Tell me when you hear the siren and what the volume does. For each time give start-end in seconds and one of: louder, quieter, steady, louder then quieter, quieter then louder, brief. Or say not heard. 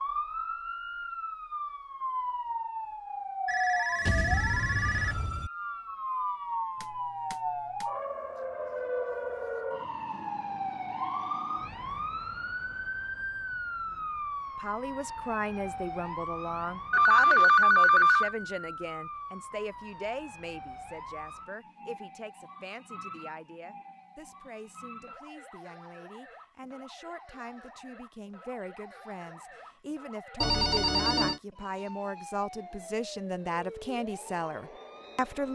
0.0-35.5 quieter.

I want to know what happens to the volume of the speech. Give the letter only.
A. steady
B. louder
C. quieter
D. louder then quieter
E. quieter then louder
E.